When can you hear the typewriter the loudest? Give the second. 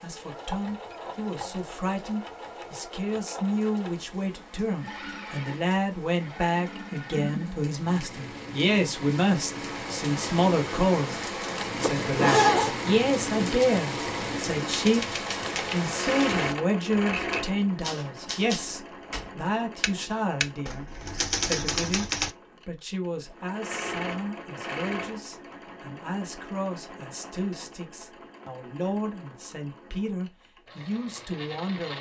21 s.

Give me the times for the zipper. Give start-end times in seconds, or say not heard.
11.8-12.8.